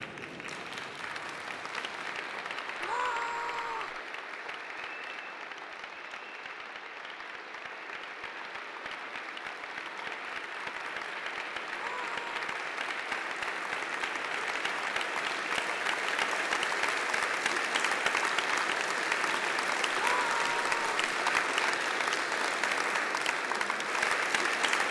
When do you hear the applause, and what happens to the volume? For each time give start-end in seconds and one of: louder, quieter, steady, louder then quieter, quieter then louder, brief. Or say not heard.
0.0-24.8 louder.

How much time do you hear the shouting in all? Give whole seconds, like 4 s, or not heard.
3 s.